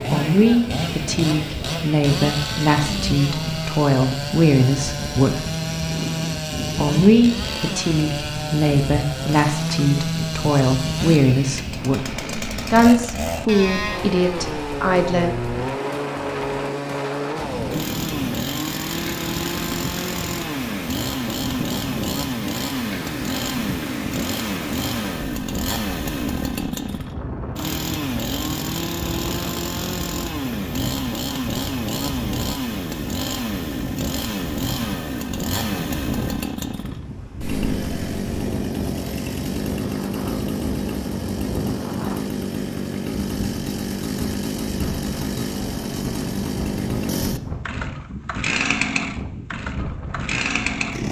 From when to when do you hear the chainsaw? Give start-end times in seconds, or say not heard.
0.0-51.0.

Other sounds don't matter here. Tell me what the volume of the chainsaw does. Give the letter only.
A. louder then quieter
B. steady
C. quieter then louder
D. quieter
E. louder
B.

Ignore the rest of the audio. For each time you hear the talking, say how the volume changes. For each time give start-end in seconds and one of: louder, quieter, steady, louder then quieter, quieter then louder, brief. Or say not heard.
0.1-5.5 steady
6.8-12.1 steady
12.7-15.5 brief.